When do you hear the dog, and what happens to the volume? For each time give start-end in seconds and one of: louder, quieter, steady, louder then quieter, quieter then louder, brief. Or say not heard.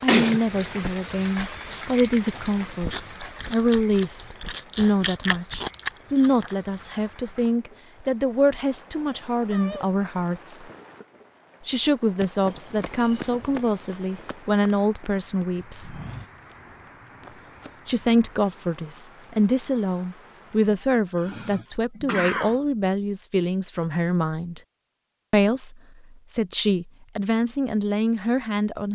not heard.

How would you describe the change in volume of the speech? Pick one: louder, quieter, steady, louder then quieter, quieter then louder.
steady.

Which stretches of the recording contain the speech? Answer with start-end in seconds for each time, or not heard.
0.0-10.7, 11.7-16.0, 17.9-24.6, 25.3-28.9.